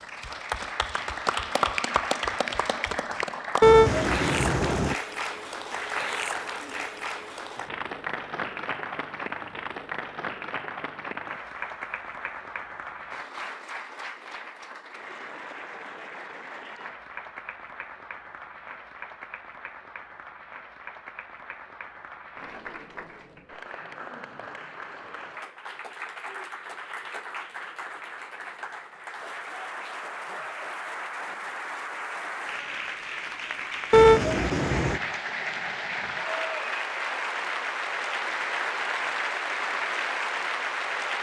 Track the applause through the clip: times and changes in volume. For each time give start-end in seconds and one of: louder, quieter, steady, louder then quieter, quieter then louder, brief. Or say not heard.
0.0-41.1 quieter then louder.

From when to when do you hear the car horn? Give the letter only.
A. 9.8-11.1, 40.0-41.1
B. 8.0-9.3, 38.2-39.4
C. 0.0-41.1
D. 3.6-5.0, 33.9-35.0
D.